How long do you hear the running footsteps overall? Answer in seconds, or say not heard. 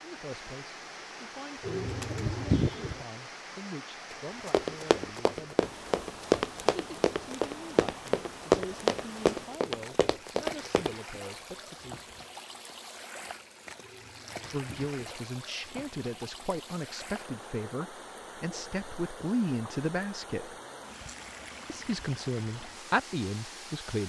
7 s.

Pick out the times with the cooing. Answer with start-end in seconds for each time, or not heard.
1.6-3.0, 13.8-14.9.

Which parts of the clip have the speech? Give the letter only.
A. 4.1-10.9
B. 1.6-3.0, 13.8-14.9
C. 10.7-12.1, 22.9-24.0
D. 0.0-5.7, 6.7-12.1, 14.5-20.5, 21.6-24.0
D.